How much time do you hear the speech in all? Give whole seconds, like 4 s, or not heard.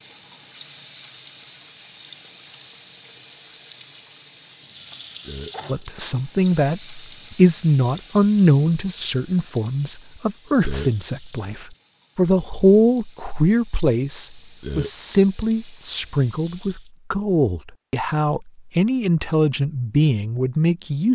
15 s.